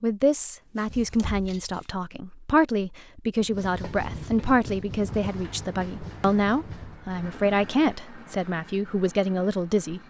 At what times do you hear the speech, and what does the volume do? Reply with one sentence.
You can hear the speech from 0.0 to 10.0 s, at a steady volume.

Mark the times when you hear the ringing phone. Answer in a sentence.
The ringing phone can't be heard in this clip.